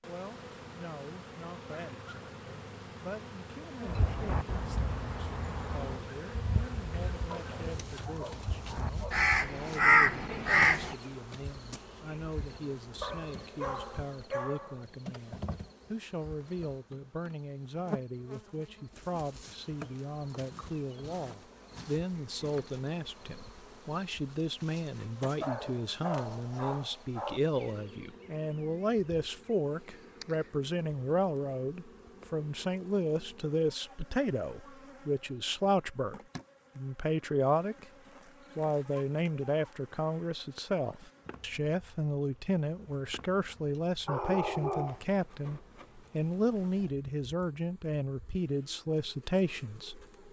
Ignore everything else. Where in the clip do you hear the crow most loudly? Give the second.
10 s.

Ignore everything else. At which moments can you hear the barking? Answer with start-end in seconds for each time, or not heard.
7.3-9.2, 13.0-14.8, 25.4-27.4, 44.0-45.0.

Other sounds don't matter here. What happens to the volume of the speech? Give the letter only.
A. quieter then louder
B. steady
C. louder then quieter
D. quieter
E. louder
E.